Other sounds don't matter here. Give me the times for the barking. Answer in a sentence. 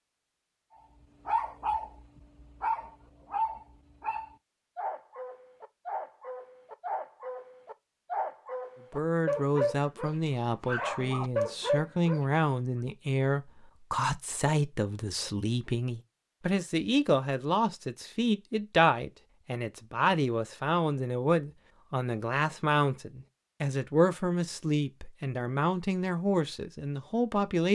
The barking can be heard from 1.2 to 12.2 s.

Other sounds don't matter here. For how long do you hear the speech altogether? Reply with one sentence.
You can hear the speech for 19 seconds altogether.